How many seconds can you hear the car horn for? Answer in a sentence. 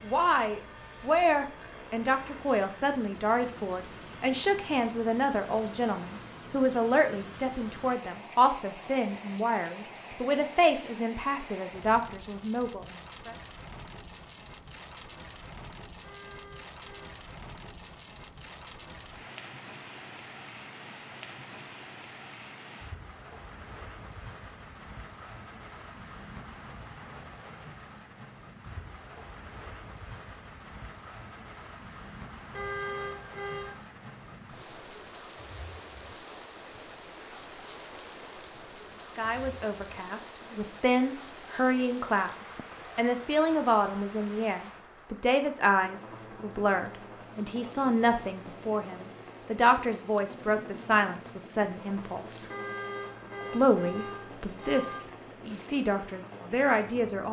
The car horn can be heard for 5 seconds in total.